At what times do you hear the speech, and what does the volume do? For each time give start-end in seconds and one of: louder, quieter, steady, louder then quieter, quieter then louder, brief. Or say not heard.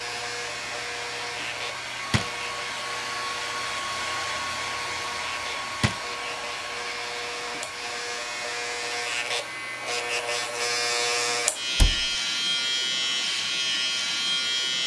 not heard.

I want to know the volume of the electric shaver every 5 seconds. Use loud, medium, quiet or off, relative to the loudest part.
medium, medium, loud.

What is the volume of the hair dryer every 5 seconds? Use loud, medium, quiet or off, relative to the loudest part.
loud, loud, medium.